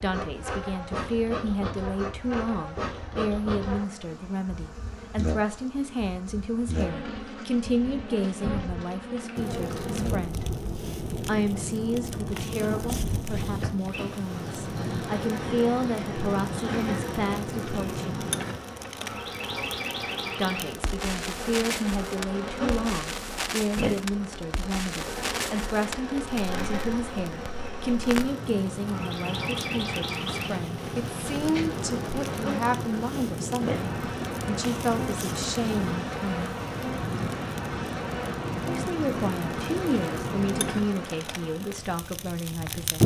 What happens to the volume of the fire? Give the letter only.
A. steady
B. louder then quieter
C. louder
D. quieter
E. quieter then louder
A.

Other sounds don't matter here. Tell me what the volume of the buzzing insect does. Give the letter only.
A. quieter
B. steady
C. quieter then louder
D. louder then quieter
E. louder
B.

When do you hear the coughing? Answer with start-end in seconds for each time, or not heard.
not heard.